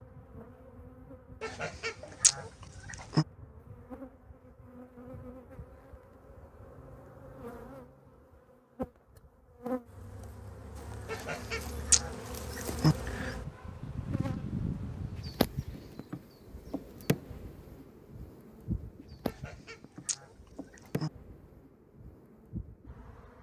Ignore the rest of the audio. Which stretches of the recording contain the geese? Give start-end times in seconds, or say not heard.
1.4-3.2, 11.1-12.9, 19.2-21.1.